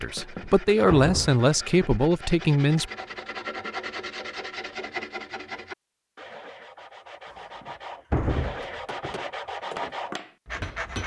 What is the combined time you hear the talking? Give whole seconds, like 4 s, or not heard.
3 s.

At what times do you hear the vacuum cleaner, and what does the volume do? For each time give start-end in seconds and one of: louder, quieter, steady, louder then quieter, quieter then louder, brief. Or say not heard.
not heard.